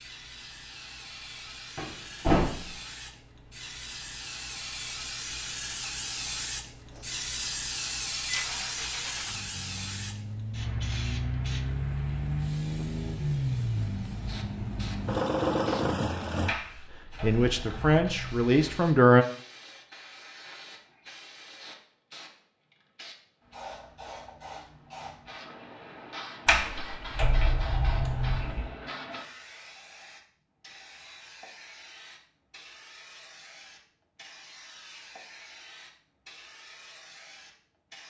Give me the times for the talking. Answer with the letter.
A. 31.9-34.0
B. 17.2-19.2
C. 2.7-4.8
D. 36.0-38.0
B.